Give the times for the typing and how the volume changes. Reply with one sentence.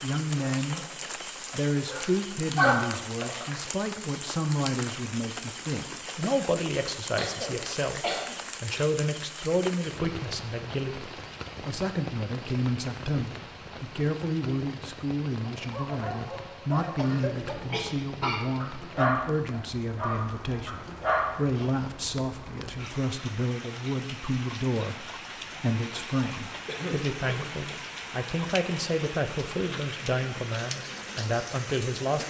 The typing can't be heard in this clip.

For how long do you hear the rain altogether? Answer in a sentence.
You can hear the rain for 32 seconds altogether.